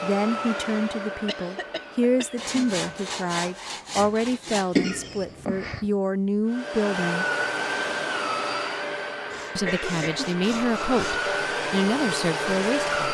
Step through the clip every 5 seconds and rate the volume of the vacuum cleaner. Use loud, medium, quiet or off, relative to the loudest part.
medium, loud, loud.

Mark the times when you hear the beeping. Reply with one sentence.
You can't hear the beeping here.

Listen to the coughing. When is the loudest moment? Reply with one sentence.
The volume of the coughing peaks at 5 seconds.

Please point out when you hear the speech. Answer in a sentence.
You can hear the speech from 0.0 to 7.2 s and from 9.6 to 12.9 s.